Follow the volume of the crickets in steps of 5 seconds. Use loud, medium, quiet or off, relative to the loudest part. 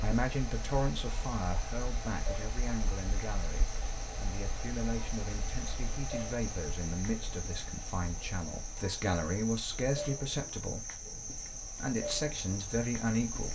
medium, loud, loud.